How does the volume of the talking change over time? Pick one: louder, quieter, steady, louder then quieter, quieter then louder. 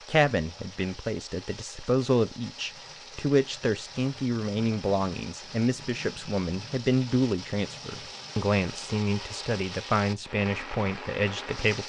steady.